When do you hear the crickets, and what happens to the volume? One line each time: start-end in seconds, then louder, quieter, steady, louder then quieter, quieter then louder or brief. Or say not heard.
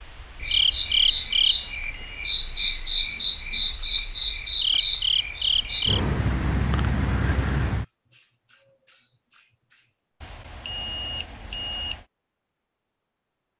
0.0-11.3 steady.